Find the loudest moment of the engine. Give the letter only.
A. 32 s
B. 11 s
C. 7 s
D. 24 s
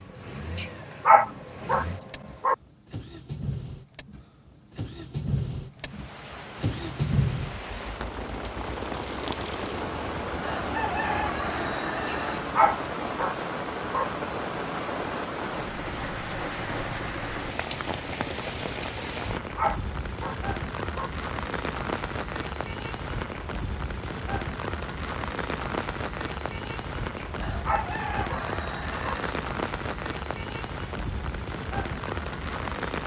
C.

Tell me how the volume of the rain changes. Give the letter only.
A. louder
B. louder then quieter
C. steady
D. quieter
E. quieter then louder
C.